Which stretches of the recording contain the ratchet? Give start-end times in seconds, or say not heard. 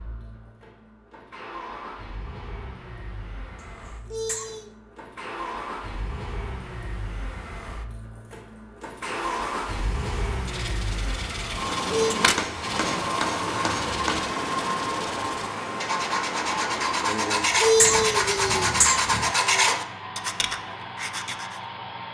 not heard.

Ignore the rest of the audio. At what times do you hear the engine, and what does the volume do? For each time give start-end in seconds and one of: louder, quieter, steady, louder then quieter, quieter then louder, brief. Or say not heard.
0.0-22.0 louder then quieter.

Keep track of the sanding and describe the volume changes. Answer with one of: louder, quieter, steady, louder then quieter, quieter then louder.
louder.